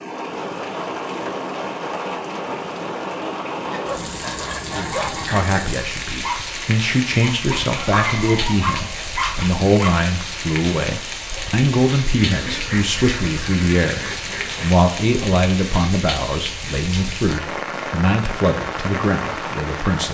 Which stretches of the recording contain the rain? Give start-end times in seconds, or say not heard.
0.0-20.0.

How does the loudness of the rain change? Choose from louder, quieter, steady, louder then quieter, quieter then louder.
steady.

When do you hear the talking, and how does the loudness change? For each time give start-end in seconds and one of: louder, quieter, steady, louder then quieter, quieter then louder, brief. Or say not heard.
4.8-20.0 steady.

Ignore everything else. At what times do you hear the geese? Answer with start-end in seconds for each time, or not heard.
3.6-5.6, 12.2-14.8.